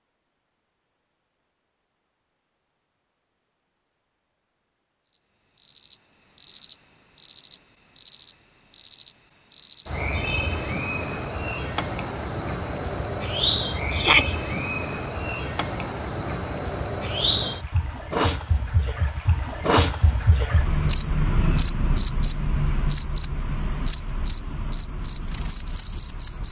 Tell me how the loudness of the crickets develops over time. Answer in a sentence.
The volume of the crickets stays about the same.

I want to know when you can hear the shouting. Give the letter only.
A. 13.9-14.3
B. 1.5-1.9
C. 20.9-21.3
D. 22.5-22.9
A.